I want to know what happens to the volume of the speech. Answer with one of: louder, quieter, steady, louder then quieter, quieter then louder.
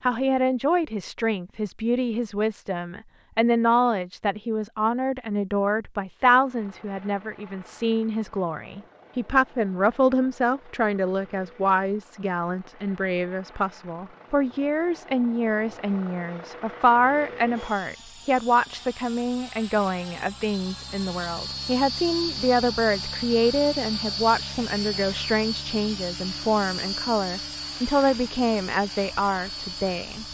steady.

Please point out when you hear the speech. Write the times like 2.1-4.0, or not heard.
0.0-30.2.